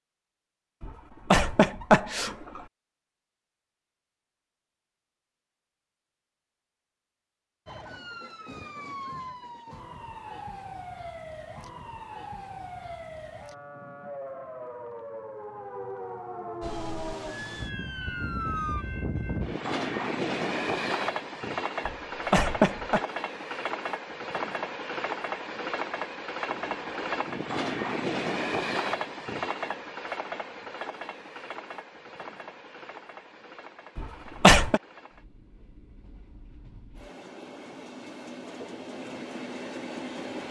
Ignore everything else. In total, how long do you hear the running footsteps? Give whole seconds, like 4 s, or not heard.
not heard.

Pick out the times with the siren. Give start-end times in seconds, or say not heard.
7.7-18.9.